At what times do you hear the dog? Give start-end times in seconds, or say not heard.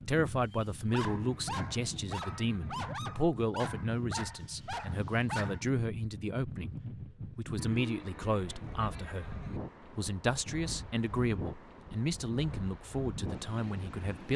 0.5-5.7.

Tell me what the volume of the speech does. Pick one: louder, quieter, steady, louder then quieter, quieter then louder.
steady.